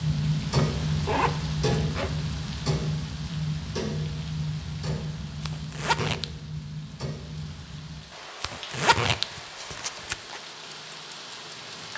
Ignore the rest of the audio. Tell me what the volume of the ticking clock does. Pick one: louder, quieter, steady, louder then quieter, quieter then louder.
quieter.